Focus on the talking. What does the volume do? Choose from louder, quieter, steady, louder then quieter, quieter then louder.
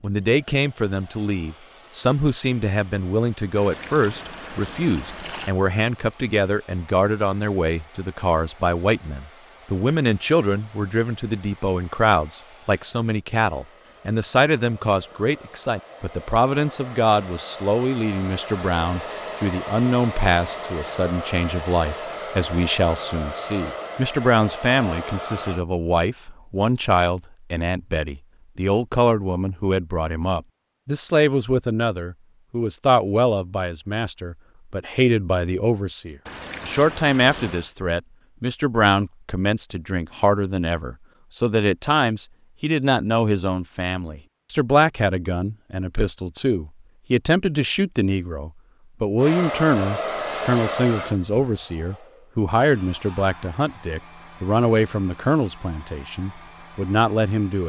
steady.